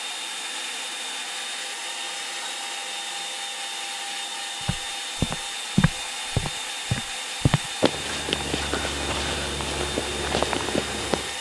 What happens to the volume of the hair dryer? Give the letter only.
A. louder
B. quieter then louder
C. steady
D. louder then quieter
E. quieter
C.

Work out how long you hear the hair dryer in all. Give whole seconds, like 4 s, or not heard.
11 s.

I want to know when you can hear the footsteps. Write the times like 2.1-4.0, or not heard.
4.7-11.3.